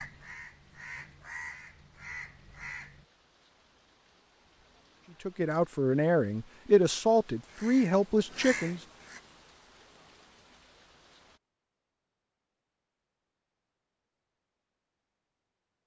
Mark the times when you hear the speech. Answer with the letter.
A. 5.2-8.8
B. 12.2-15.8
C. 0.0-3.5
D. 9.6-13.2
A.